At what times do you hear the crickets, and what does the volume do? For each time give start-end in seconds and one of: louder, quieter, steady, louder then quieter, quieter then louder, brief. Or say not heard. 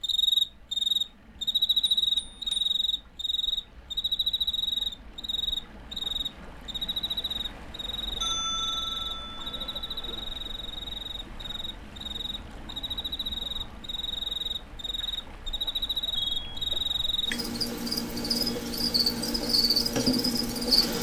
0.0-20.9 quieter then louder.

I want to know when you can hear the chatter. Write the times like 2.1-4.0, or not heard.
not heard.